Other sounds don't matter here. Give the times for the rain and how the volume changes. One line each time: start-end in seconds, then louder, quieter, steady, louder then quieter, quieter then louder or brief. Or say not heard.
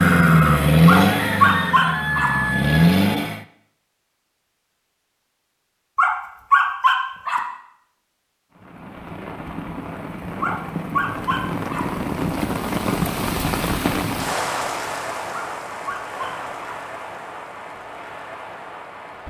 8.5-19.2 louder then quieter.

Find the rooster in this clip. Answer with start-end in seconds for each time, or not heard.
0.9-2.9.